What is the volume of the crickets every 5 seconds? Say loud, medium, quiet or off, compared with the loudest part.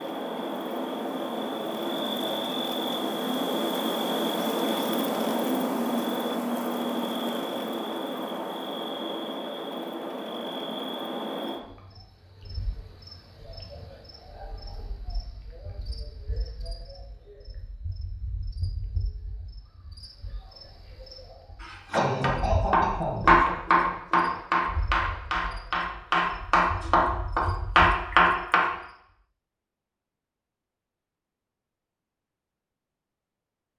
loud, loud, medium, quiet, quiet, quiet, off.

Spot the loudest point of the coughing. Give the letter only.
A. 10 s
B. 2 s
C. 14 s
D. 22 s
D.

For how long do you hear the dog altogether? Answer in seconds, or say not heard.
not heard.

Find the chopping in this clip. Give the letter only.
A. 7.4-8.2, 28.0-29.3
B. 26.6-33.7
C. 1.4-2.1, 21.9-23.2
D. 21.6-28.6
D.